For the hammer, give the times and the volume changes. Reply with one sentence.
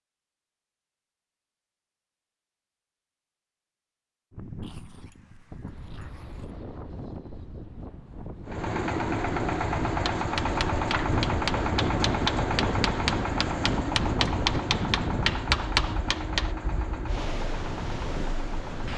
You can hear the hammer from 9.8 to 16.6 s, getting louder.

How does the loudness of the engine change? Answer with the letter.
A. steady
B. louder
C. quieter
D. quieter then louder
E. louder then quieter
C.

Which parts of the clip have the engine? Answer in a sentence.
The engine can be heard from 8.4 to 18.9 s.